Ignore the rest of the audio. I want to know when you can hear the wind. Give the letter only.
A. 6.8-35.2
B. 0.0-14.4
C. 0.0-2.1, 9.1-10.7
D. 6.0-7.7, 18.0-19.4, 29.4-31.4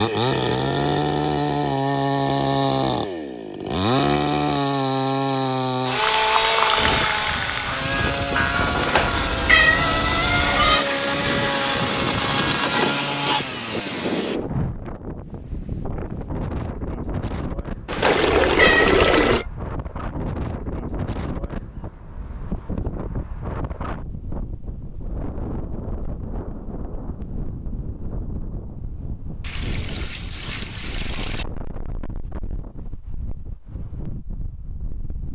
A.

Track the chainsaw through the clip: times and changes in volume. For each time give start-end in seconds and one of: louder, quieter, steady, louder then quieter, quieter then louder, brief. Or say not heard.
0.0-14.4 steady.